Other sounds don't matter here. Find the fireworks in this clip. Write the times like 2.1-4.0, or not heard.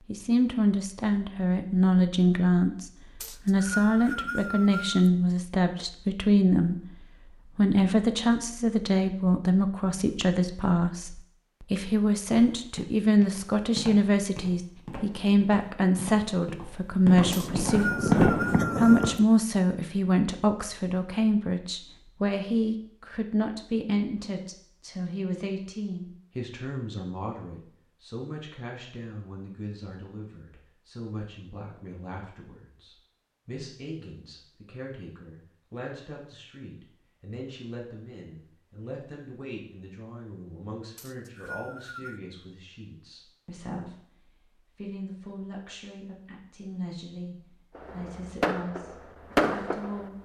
17.1-19.2, 47.8-50.2.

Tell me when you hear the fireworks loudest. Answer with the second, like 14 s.
18 s.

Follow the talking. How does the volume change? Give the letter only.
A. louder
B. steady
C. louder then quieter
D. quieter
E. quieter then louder
D.